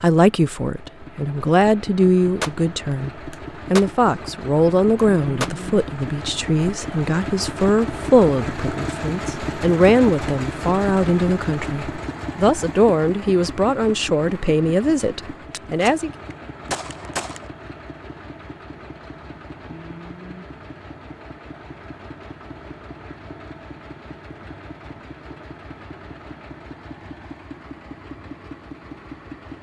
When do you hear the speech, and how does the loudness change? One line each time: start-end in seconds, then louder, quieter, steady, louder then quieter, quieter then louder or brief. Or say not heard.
0.0-16.1 steady.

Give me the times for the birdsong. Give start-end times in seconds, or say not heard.
not heard.